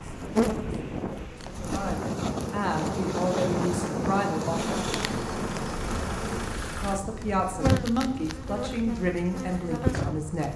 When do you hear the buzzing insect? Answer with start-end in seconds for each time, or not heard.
0.1-10.5.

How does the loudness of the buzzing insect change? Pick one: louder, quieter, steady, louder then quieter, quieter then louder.
steady.